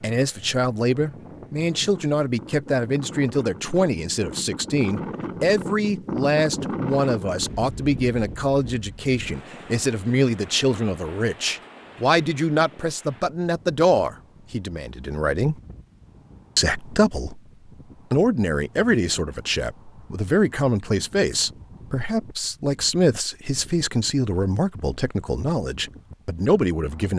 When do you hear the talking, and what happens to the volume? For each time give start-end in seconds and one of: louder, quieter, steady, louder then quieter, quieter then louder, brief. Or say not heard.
0.0-15.6 steady
16.6-17.4 brief
18.1-27.1 steady.